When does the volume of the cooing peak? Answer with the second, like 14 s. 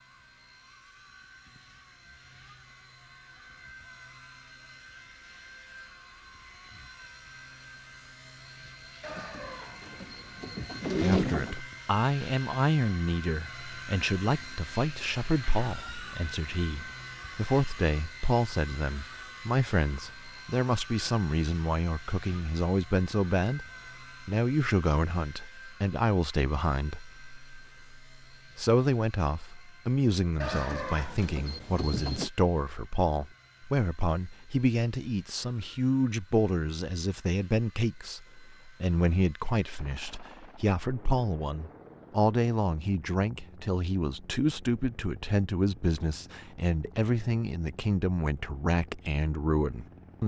11 s.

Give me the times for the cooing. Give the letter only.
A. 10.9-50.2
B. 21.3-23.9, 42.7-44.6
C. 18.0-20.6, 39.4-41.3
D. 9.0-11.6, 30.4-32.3
D.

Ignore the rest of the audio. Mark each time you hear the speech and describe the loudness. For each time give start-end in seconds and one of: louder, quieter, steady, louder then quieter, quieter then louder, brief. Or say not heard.
10.9-50.2 steady.